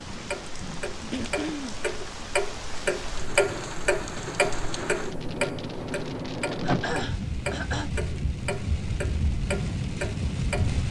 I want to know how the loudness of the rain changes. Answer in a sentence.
The loudness of the rain goes up.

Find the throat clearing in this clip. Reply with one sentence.
The throat clearing can be heard from 1.1 to 1.8 s and from 6.6 to 7.9 s.